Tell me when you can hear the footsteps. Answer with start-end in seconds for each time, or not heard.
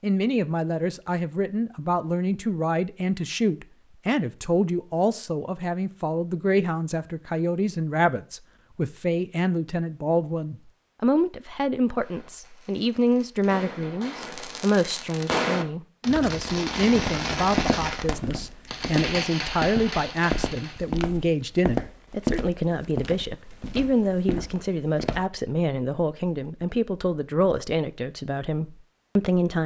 16.1-25.2.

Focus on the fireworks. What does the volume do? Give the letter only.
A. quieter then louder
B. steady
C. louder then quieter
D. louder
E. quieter
D.